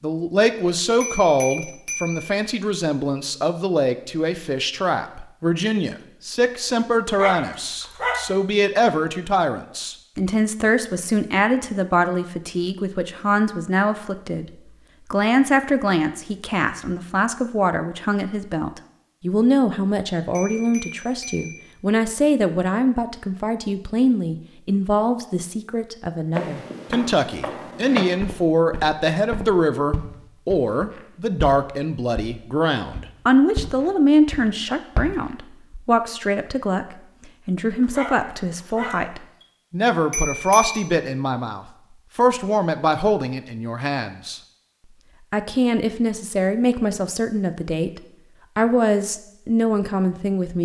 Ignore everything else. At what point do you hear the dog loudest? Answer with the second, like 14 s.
8 s.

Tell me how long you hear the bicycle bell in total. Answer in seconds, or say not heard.
3 s.